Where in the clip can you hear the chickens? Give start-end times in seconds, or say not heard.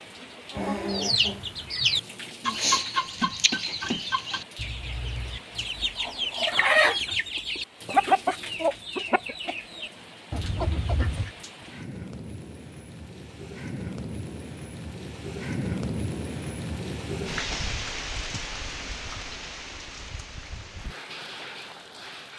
0.5-11.3.